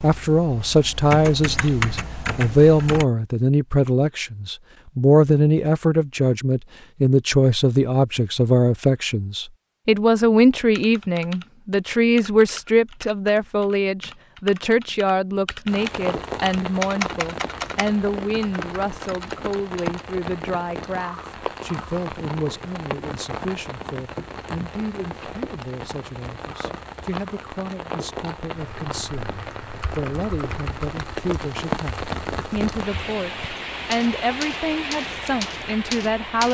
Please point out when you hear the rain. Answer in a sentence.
You can hear the rain from 15.7 to 36.4 s.